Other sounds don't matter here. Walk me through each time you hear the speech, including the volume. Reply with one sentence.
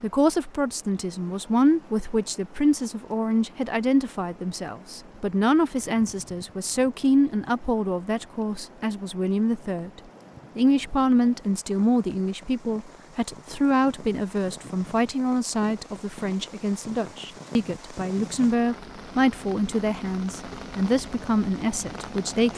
You can hear the speech from 0.0 to 22.5 s, at a steady volume.